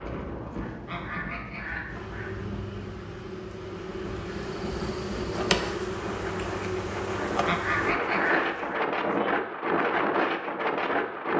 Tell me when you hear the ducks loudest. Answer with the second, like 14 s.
8 s.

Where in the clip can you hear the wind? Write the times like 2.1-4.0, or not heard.
0.0-11.3.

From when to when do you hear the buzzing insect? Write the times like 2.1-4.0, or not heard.
1.9-8.0.